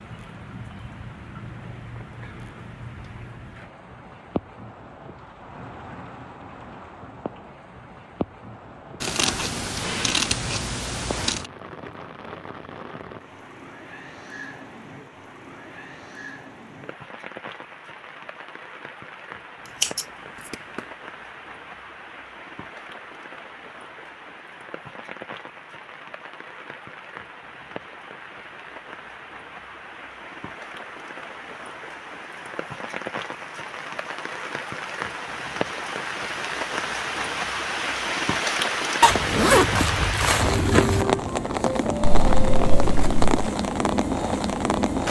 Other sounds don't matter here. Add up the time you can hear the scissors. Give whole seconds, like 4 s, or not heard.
5 s.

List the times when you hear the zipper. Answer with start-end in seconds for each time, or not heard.
39.0-41.0.